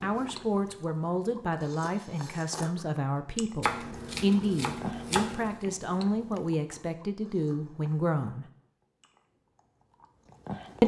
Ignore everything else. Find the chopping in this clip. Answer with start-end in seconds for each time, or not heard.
3.6-5.7.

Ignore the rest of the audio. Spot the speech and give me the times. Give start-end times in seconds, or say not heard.
0.0-8.4.